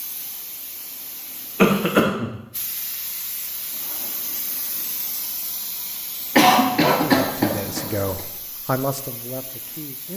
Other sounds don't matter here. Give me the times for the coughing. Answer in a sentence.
The coughing can be heard from 1.6 to 2.3 s and from 6.3 to 8.0 s.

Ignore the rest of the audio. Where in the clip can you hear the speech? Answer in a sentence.
The speech can be heard from 6.7 to 10.1 s.